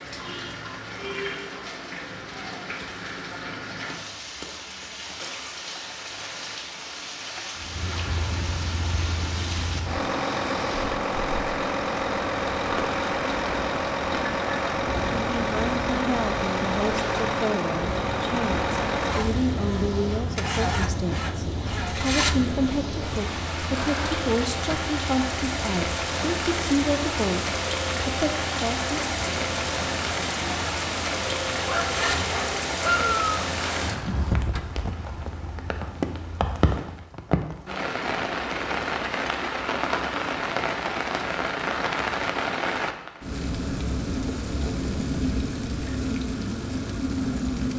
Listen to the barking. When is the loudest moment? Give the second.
33 s.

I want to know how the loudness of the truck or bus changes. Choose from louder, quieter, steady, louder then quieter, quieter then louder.
quieter.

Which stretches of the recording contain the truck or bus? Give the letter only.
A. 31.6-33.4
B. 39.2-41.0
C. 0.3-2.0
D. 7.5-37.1
D.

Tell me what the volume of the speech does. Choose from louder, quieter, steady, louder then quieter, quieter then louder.
steady.